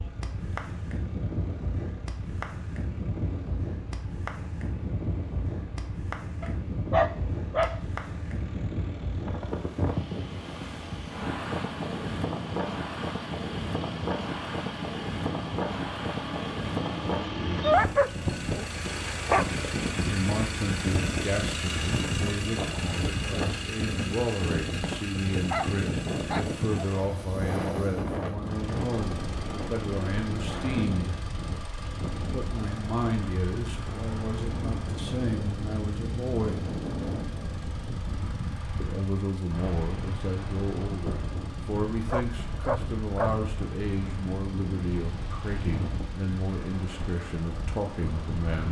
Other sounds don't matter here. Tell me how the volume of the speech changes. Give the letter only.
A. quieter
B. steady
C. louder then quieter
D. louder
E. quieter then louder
B.